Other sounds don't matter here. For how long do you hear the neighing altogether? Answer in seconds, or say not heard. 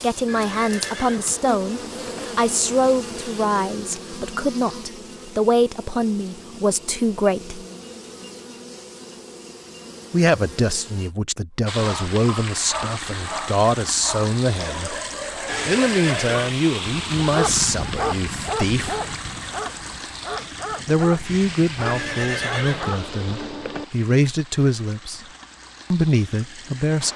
5 s.